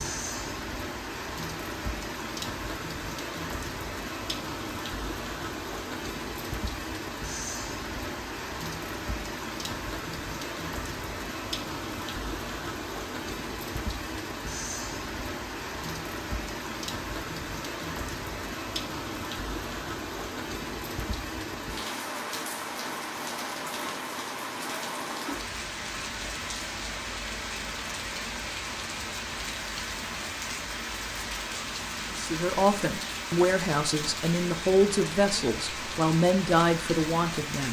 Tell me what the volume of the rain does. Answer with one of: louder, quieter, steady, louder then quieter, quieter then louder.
steady.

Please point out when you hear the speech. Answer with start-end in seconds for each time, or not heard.
32.1-37.6.